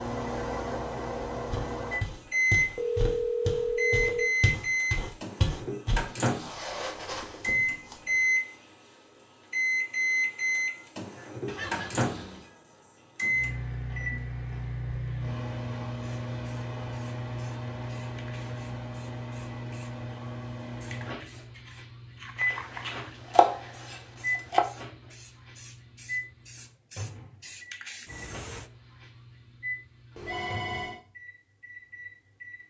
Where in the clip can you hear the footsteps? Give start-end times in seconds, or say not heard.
1.5-8.1.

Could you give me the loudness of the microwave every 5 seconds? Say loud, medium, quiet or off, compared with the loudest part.
loud, loud, loud, medium, medium, quiet, quiet.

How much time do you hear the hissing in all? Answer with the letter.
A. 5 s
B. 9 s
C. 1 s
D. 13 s
D.